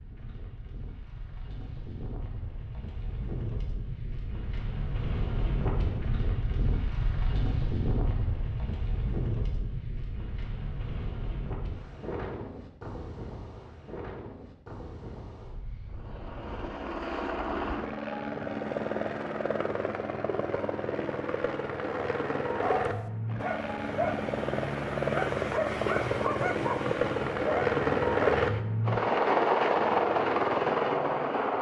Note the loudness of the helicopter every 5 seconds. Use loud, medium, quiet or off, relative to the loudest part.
off, off, off, medium, medium, loud, loud.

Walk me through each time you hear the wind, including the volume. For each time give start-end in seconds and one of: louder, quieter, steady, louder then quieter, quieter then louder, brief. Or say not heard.
0.0-16.8 louder then quieter.